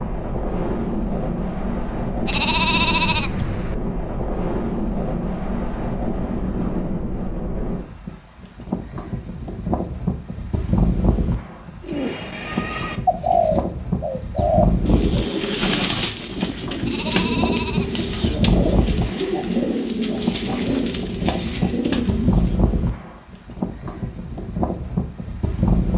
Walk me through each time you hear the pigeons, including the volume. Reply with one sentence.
The pigeons can be heard from 11.8 to 22.6 s, at a steady volume.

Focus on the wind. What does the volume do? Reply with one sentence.
The volume of the wind stays about the same.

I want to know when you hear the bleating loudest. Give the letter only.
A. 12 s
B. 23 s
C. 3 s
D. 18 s
C.